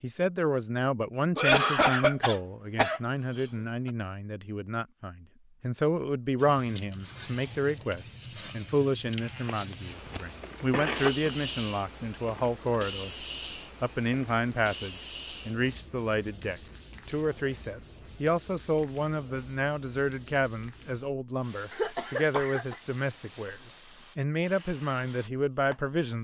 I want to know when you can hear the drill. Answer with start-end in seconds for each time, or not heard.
not heard.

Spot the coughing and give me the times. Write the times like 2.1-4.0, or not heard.
1.4-3.9, 9.2-11.3, 21.7-22.8.